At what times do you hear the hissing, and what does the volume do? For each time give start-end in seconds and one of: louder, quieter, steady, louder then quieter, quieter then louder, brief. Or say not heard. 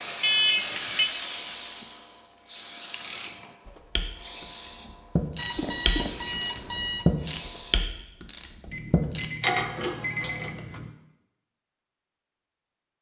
0.0-7.8 steady.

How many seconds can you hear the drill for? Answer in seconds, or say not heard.
3 s.